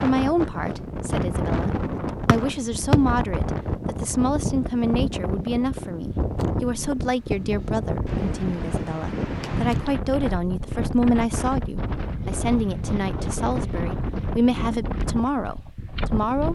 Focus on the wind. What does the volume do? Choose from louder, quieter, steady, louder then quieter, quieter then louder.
steady.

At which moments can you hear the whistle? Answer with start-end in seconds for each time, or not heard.
2.2-3.0.